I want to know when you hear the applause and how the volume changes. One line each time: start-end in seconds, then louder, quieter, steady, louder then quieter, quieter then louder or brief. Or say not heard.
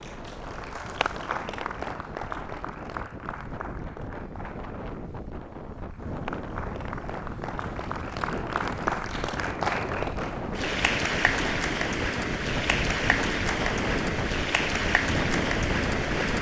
0.0-16.3 quieter then louder.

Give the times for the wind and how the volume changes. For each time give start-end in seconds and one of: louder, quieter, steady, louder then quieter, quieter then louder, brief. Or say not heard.
0.0-16.3 louder.